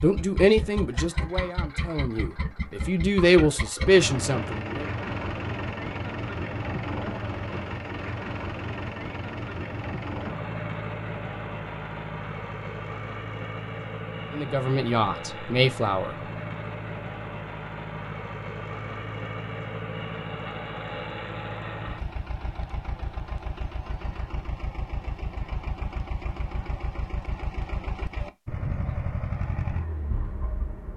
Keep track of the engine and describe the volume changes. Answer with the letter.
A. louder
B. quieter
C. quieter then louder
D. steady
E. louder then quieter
D.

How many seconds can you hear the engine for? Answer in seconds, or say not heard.
31 s.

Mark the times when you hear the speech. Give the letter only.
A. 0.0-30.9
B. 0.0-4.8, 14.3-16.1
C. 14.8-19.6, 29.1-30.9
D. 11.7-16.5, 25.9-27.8
B.